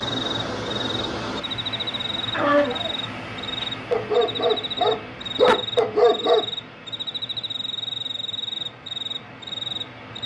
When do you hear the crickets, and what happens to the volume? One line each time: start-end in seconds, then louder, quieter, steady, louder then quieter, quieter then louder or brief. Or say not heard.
0.0-10.2 steady.